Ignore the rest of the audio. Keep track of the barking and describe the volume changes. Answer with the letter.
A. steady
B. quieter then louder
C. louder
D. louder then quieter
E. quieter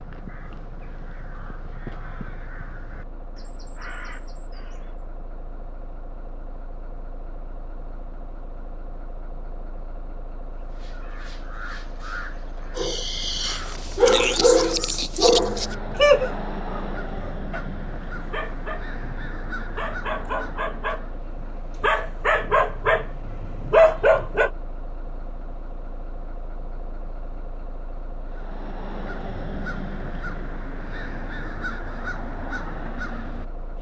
B.